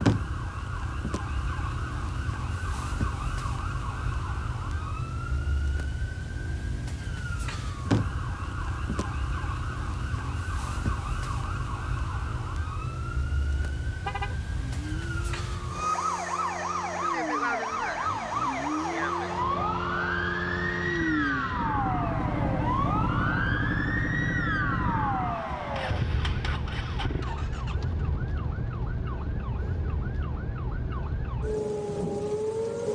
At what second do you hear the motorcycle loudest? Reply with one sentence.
The volume of the motorcycle peaks at 23 seconds.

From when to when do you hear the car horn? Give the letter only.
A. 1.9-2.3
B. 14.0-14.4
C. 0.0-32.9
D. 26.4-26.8
B.